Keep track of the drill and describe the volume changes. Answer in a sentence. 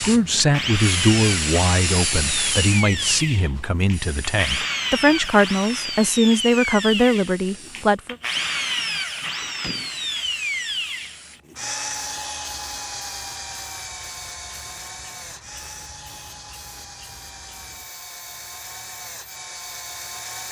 The volume of the drill goes down.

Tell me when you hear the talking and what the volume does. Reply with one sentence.
You can hear the talking from 0.0 to 8.2 s, getting quieter then louder.